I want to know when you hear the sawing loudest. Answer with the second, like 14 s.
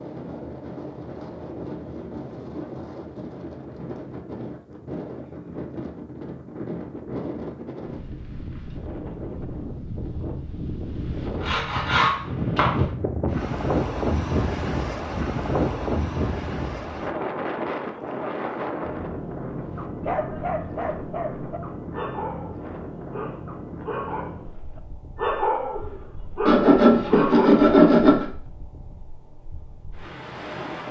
28 s.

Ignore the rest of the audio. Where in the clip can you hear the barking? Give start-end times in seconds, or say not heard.
19.8-27.6.